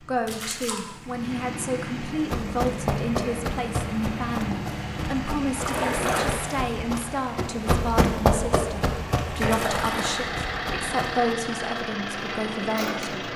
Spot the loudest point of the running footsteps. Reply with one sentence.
The loudest moment of the running footsteps is at 8 seconds.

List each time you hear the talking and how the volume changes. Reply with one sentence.
You can hear the talking from 0.0 to 13.3 s, at a steady volume.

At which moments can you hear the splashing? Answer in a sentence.
The splashing can be heard from 0.2 to 0.8 s, from 5.5 to 6.7 s and from 9.3 to 10.2 s.